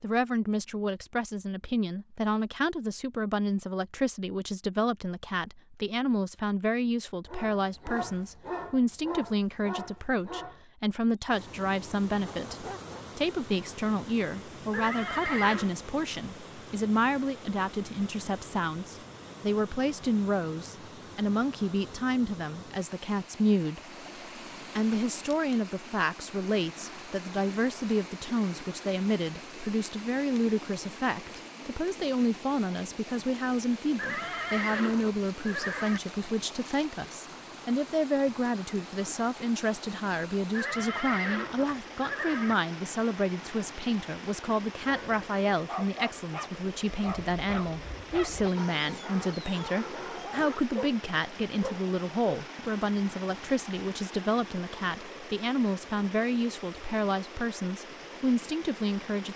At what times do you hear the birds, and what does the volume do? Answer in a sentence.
The birds can't be heard in this clip.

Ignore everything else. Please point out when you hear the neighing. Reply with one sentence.
You can hear the neighing from 14.7 to 15.8 s, from 34.0 to 36.0 s and from 40.5 to 42.5 s.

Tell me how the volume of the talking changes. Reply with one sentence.
The loudness of the talking stays about the same.